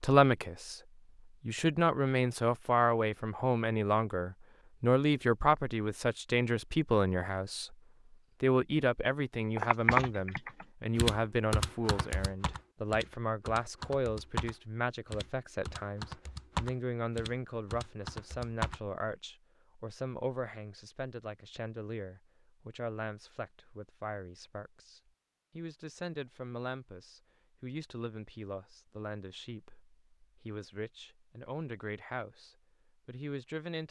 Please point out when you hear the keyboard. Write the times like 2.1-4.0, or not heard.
9.6-18.8.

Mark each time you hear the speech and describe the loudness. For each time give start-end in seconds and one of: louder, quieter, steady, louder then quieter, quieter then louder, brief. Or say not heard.
0.0-0.8 brief
1.4-7.8 steady
8.4-33.8 quieter.